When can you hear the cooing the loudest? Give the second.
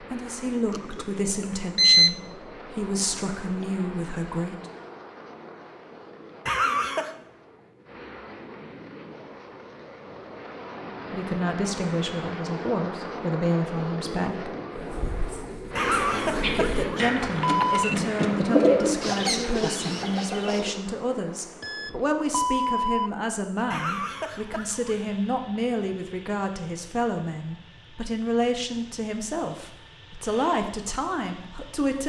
19 s.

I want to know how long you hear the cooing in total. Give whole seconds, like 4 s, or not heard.
6 s.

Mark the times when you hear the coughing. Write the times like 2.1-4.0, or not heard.
6.5-7.2, 15.8-17.8, 23.7-25.0.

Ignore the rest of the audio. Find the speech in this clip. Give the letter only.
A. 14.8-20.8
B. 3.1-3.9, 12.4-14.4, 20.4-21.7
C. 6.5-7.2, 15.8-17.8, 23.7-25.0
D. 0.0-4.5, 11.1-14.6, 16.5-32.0
D.